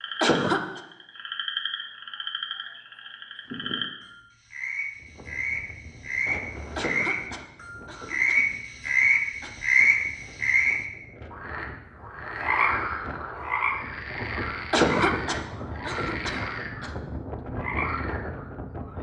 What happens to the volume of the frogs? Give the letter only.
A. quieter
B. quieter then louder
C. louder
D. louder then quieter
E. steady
D.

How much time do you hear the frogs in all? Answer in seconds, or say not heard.
19 s.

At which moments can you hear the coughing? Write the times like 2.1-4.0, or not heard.
0.2-0.8, 6.8-9.5, 14.7-16.9.